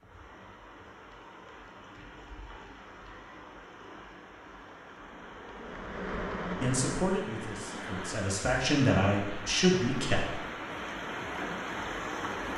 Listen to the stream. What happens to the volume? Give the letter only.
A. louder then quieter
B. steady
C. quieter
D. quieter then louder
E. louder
E.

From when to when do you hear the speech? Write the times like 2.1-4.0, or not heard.
6.6-10.4.